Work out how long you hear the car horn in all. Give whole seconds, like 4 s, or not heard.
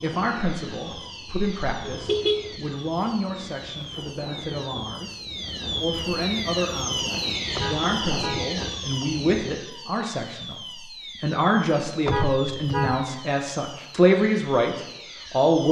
3 s.